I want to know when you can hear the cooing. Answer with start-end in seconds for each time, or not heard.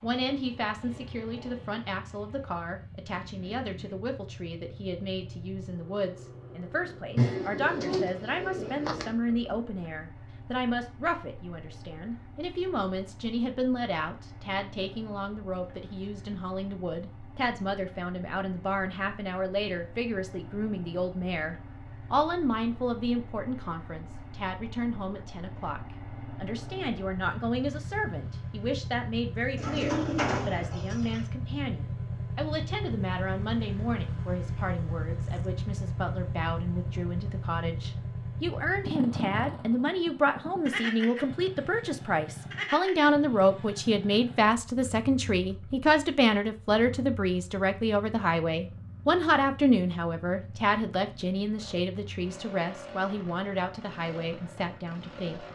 7.2-9.2, 29.6-31.2.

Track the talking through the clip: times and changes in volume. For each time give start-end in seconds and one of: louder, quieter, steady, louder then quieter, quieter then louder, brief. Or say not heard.
0.0-55.4 louder.